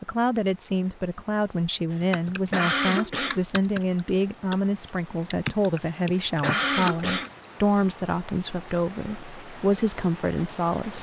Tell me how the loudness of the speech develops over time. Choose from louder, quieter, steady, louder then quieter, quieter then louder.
steady.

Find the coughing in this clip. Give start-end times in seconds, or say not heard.
2.4-3.9, 6.2-7.3.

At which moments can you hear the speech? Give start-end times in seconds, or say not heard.
0.0-10.9.